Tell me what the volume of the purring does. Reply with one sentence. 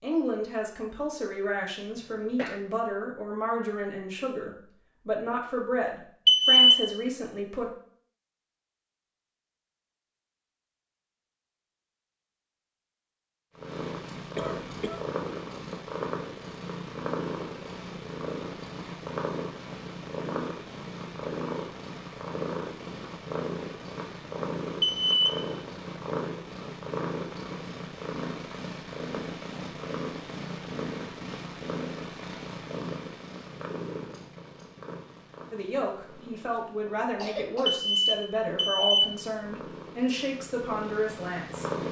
The loudness of the purring goes down.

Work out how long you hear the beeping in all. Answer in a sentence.
The beeping can be heard for 3 seconds in total.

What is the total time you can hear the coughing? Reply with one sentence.
You can hear the coughing for 2 seconds altogether.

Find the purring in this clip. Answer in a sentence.
The purring can be heard from 13.6 to 41.8 s.